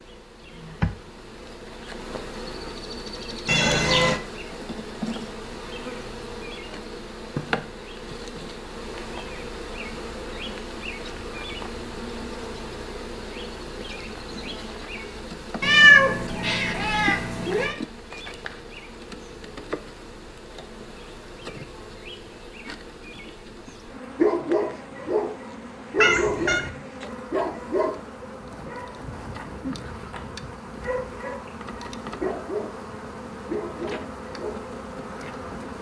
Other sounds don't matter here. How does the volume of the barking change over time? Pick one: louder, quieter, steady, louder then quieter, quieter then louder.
quieter then louder.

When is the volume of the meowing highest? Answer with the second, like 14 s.
16 s.